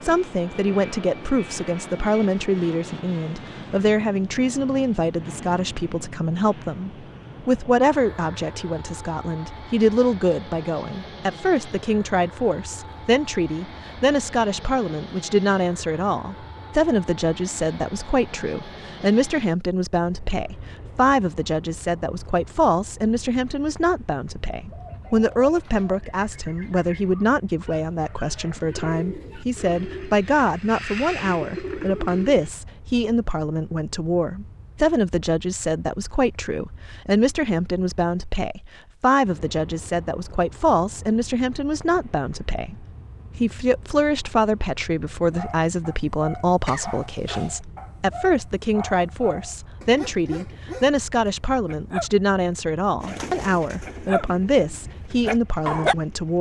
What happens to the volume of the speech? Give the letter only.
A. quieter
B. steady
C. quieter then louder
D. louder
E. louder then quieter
B.